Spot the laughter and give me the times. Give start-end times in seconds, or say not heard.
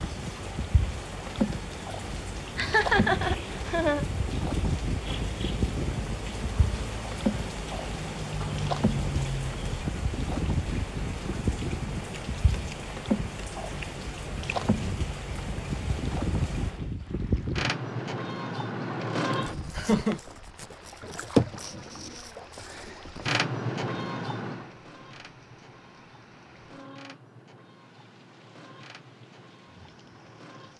2.1-4.0, 19.8-20.2.